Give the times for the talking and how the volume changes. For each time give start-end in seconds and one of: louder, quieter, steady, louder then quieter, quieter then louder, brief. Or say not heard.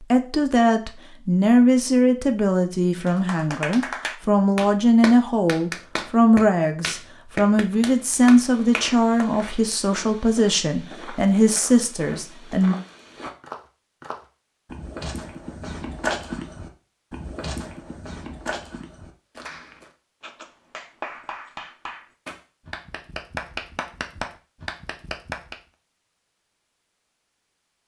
0.0-12.8 steady.